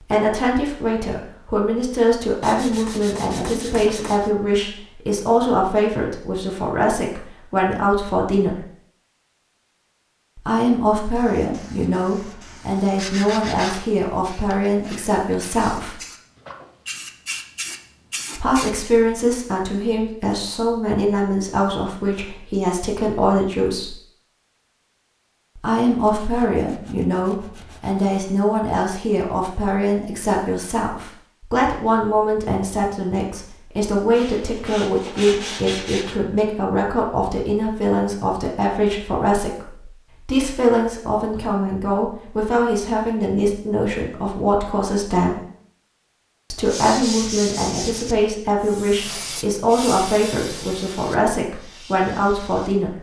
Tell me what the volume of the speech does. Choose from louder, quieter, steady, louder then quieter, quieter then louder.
steady.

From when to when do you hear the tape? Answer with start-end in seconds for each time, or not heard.
not heard.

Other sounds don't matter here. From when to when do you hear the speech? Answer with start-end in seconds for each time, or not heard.
0.1-8.6, 10.3-15.9, 18.4-23.9, 25.6-45.4, 46.5-52.9.